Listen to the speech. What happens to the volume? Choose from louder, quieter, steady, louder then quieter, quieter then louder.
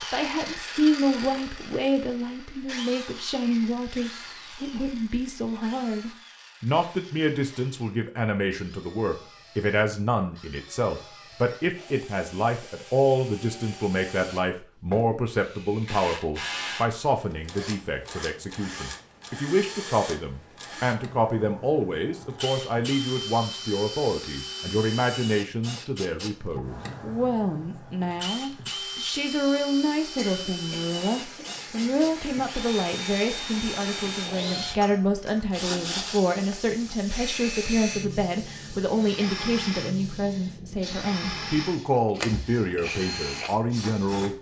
steady.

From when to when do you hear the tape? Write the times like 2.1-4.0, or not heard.
not heard.